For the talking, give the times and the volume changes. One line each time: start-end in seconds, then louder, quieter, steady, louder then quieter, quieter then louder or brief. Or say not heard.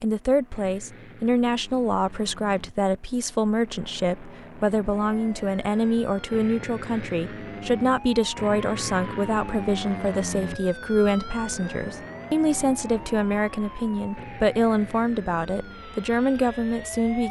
0.0-17.2 steady.